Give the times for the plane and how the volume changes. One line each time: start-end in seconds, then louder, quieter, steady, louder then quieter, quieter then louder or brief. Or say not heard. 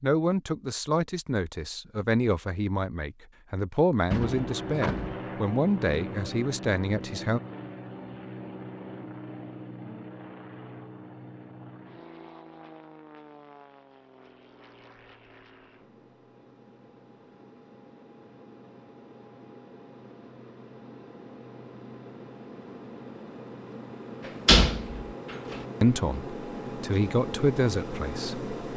4.2-28.7 quieter then louder.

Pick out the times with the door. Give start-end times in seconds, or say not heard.
4.0-5.2, 24.4-25.1.